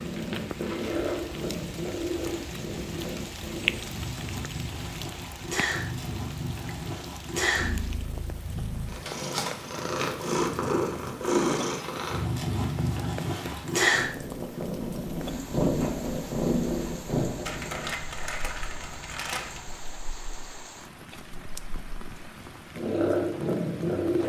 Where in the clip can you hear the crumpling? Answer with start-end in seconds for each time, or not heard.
0.6-1.2, 11.7-13.7, 17.4-19.8.